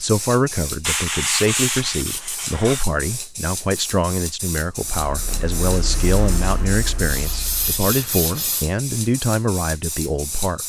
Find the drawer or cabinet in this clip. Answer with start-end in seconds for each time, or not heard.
not heard.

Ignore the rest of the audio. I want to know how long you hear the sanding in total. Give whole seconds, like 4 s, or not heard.
4 s.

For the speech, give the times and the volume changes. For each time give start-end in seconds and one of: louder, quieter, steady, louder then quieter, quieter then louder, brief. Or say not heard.
0.0-10.6 steady.